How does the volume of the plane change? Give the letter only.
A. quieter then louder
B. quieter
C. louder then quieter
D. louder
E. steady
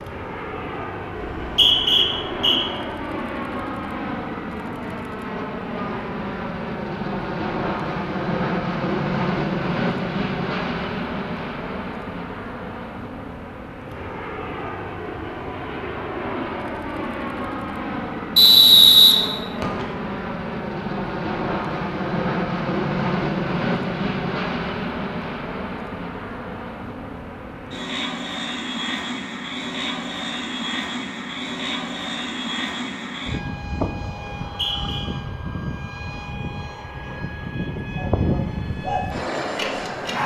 E.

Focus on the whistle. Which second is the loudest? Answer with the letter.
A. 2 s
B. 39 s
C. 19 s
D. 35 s
C.